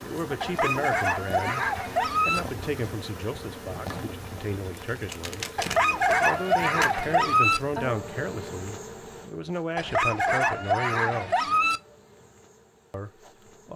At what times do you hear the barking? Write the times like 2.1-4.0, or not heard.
0.4-2.4, 5.5-7.6, 9.8-11.8.